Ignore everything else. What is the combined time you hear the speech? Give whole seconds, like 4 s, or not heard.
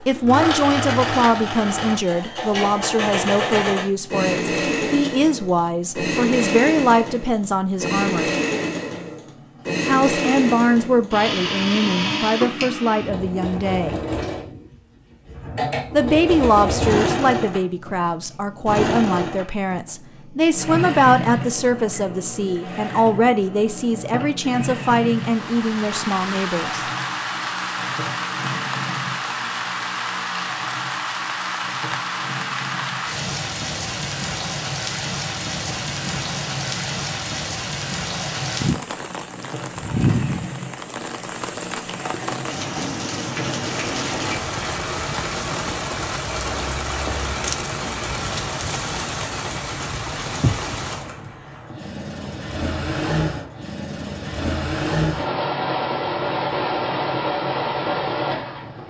23 s.